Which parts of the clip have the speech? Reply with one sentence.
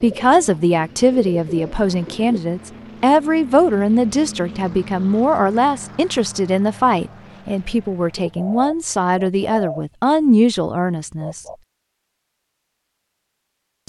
You can hear the speech from 0.0 to 11.4 s.